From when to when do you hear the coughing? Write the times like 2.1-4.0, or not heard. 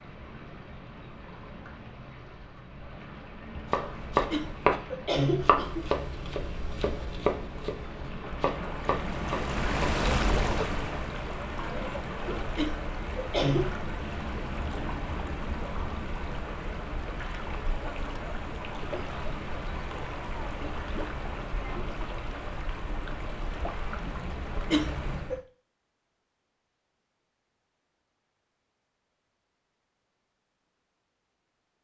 4.3-6.2, 12.6-13.7, 24.7-25.4.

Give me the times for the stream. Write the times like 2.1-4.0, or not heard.
0.0-25.4.